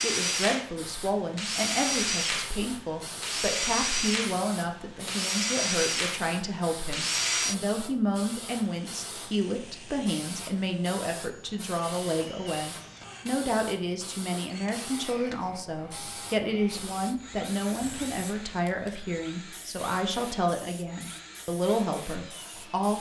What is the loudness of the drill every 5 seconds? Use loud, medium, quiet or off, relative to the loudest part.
loud, loud, quiet, quiet, quiet.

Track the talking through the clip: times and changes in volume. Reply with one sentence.
You can hear the talking from 0.0 to 22.9 s, at a steady volume.